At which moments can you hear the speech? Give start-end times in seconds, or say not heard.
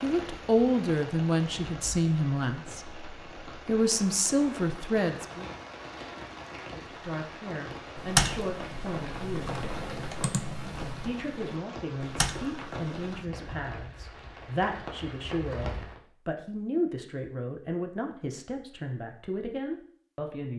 0.0-5.5, 6.7-9.6, 11.0-20.5.